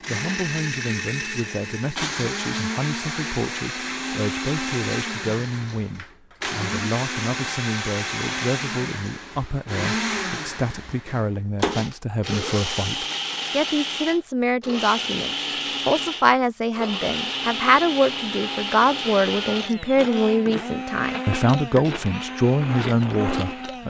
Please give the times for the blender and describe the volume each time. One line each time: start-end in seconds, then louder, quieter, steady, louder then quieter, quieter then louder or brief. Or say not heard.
0.0-23.8 steady.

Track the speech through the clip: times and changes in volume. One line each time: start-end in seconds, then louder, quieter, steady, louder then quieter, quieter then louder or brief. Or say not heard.
0.1-23.8 louder.